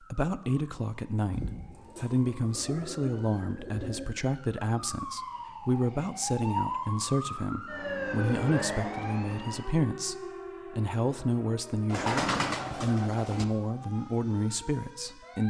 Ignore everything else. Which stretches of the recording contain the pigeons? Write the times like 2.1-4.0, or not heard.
1.3-4.2, 11.9-13.4.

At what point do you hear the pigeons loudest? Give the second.
12 s.